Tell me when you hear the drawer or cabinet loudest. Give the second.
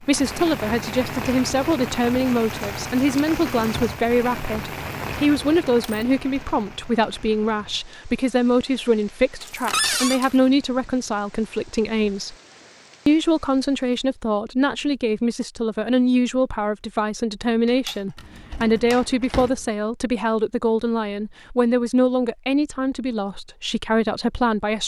10 s.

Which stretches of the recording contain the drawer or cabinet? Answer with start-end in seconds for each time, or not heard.
9.7-10.2, 18.1-19.6.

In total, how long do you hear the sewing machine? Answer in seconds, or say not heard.
not heard.